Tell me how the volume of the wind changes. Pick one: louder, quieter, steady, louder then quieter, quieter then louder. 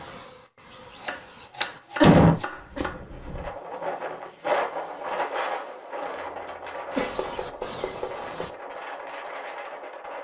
louder then quieter.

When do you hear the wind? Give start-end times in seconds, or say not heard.
2.5-10.1.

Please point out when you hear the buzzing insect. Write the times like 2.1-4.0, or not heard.
0.0-1.8, 6.9-8.5.